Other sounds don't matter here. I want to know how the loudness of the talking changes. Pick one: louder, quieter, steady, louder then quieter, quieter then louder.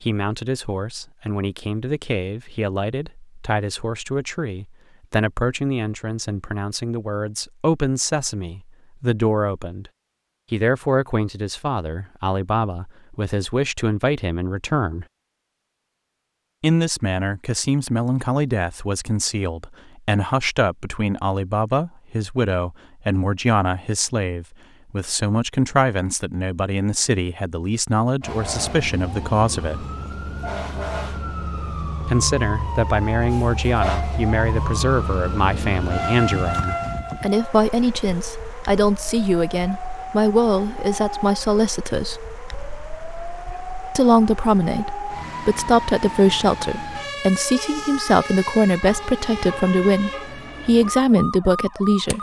louder.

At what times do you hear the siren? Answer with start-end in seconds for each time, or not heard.
28.2-52.1.